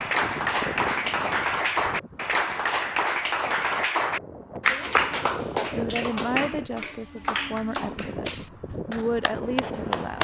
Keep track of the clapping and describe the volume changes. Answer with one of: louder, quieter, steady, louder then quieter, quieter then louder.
quieter.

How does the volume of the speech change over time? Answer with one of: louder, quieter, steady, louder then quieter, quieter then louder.
quieter then louder.